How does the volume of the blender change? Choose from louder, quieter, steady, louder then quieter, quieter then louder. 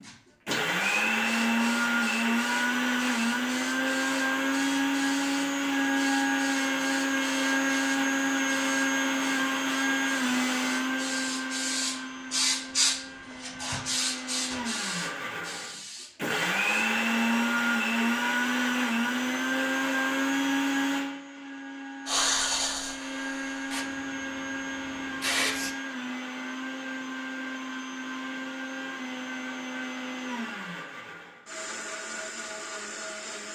quieter.